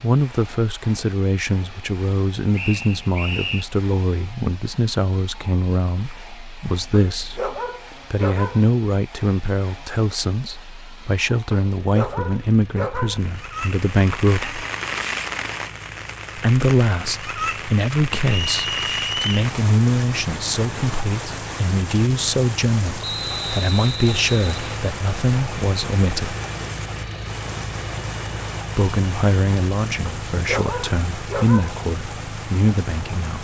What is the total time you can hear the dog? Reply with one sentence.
You can hear the dog for 5 seconds altogether.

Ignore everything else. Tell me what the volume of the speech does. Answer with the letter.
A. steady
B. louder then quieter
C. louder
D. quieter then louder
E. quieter
A.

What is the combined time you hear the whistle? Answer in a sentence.
The whistle can be heard for 4 seconds in total.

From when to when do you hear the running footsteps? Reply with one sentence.
The running footsteps can't be heard in this clip.